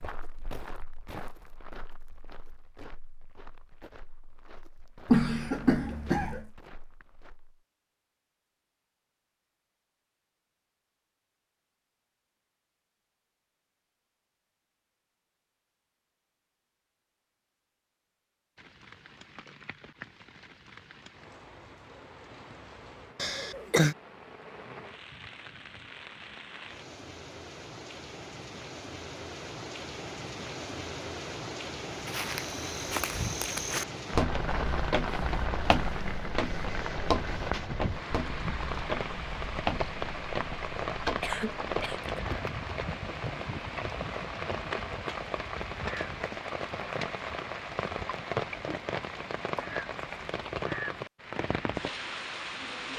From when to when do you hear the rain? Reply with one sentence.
You can hear the rain from 18.6 to 52.9 s.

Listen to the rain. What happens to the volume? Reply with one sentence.
The loudness of the rain goes up.